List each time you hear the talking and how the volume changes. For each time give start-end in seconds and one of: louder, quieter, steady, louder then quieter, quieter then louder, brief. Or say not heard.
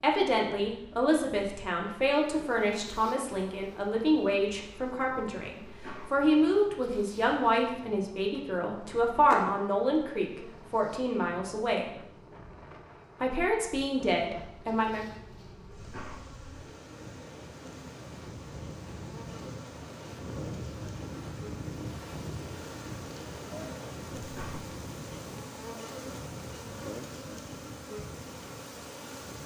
0.0-12.0 steady
13.2-15.1 brief.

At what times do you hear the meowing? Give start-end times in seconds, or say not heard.
not heard.